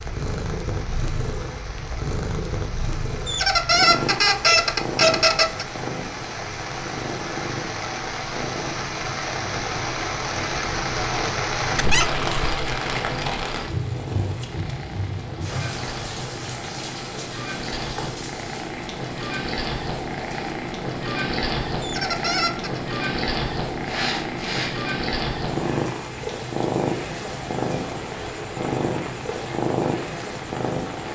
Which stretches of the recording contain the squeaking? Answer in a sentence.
You can hear the squeaking from 3.2 to 5.7 s, from 11.8 to 12.6 s and from 21.8 to 22.8 s.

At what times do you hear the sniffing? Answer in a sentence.
The sniffing can be heard from 23.8 to 24.8 s.